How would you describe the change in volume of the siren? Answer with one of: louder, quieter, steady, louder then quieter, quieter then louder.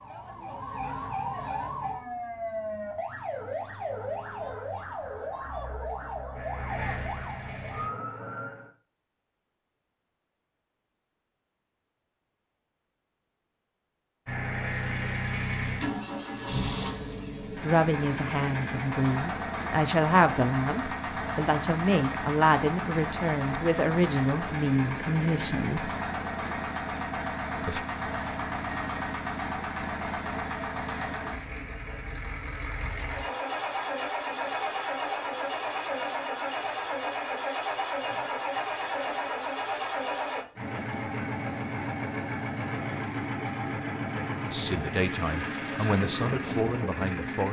steady.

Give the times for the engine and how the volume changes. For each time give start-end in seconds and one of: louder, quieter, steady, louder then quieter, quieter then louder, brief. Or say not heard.
6.3-7.9 brief
14.2-47.4 steady.